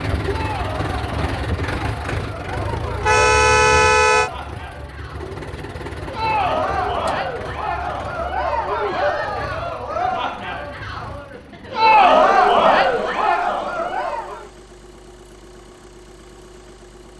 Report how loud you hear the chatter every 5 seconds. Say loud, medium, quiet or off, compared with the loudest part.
quiet, medium, loud, off.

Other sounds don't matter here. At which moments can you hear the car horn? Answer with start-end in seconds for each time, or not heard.
3.0-4.3.